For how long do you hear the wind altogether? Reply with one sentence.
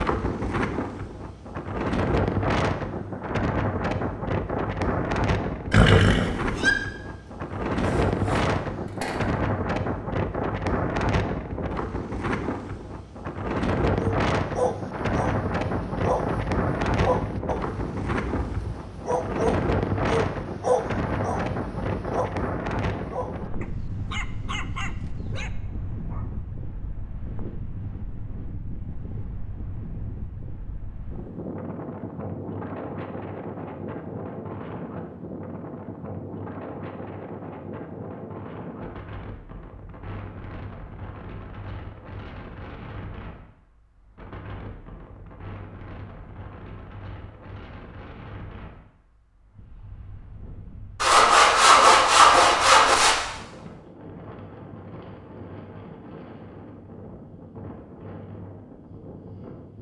You can hear the wind for 60 seconds altogether.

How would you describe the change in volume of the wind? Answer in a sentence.
The volume of the wind goes down.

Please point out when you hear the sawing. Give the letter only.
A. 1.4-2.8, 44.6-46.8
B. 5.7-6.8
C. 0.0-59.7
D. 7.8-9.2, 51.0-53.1
D.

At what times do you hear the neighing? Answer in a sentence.
You can hear the neighing from 5.7 to 6.8 s.